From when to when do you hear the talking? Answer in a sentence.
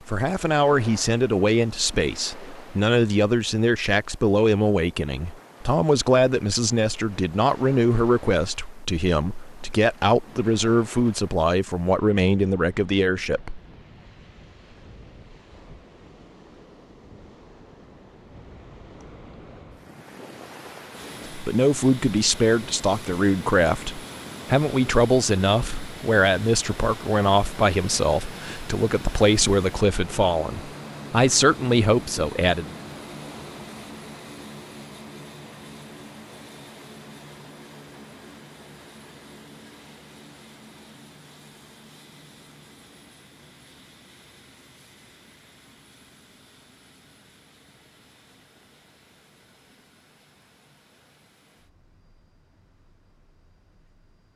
The talking can be heard from 0.1 to 13.6 s and from 21.3 to 32.8 s.